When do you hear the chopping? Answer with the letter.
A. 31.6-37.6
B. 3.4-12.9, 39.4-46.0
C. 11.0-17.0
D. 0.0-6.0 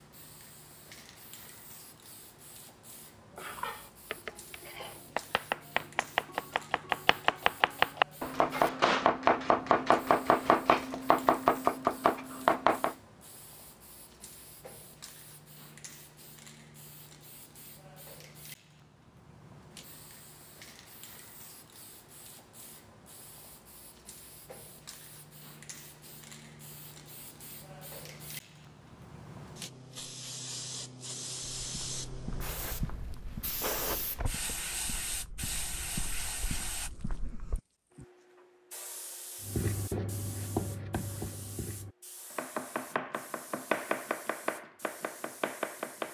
B.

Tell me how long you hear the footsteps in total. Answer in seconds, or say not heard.
6 s.